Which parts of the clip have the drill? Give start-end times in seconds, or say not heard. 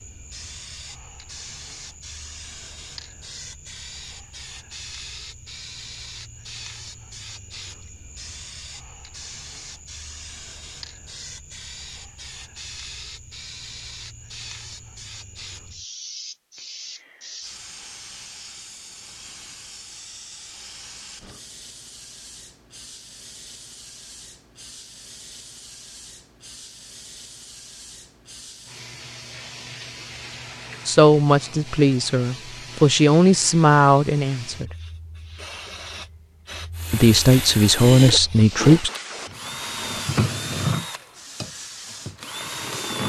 36.8-43.0.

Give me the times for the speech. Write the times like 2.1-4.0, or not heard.
30.9-34.7, 36.9-38.9.